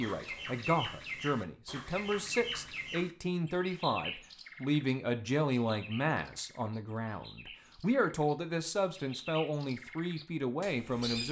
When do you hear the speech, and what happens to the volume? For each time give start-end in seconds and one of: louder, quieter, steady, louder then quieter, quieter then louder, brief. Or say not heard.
0.0-11.2 steady.